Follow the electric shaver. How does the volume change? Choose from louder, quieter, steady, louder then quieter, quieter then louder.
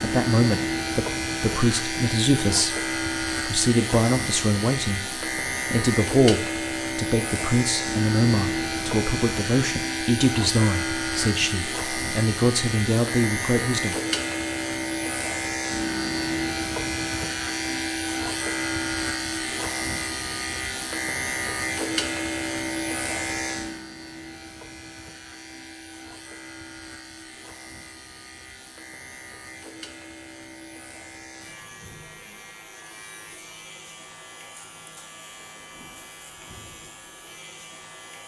quieter.